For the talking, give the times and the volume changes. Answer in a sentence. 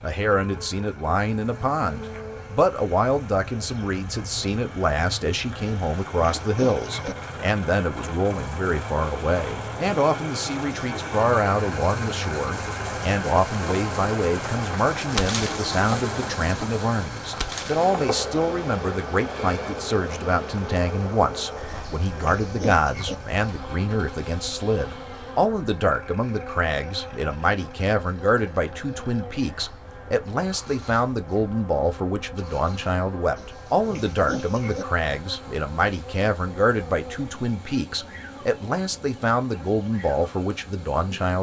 You can hear the talking from 0.0 to 41.3 s, at a steady volume.